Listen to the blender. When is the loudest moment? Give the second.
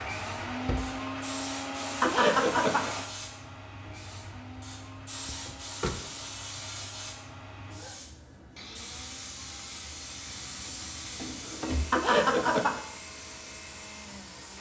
1 s.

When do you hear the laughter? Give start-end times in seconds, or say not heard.
2.0-3.0, 11.9-12.8.